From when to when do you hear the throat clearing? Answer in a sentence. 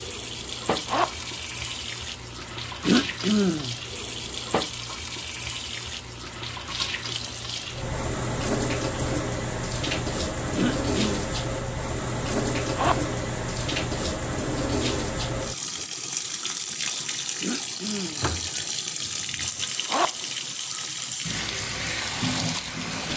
The throat clearing can be heard from 2.8 to 3.8 s, from 10.6 to 11.2 s and from 17.4 to 18.3 s.